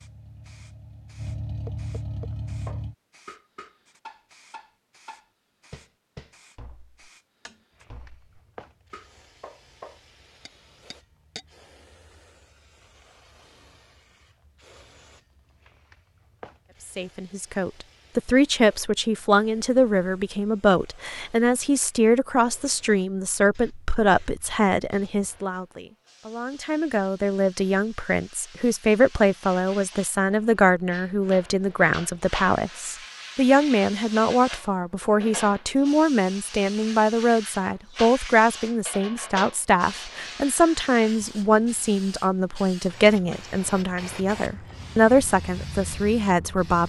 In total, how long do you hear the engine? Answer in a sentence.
You can hear the engine for 3 seconds altogether.